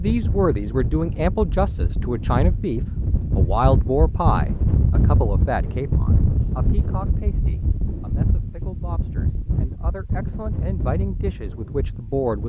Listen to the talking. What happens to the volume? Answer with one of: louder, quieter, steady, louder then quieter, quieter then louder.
quieter then louder.